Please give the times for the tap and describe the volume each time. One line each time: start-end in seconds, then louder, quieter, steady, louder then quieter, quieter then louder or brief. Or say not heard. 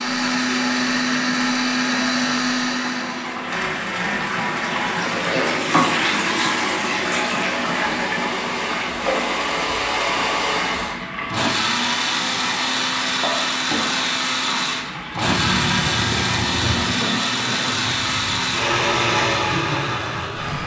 0.0-20.6 louder then quieter.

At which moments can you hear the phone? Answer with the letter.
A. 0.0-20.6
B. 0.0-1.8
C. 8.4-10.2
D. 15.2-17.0
D.